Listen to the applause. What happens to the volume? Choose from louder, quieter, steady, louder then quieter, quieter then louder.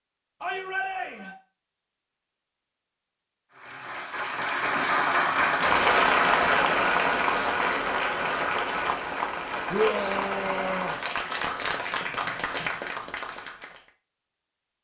quieter.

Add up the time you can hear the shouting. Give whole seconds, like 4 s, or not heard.
2 s.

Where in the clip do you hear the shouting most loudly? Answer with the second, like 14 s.
10 s.